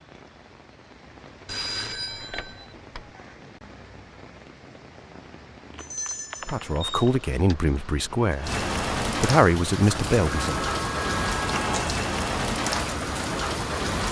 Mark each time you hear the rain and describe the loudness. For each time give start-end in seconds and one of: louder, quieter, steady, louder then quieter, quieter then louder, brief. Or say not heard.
0.0-14.0 louder.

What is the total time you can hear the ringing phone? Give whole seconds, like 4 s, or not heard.
5 s.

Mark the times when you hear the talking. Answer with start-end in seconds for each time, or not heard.
6.5-10.8.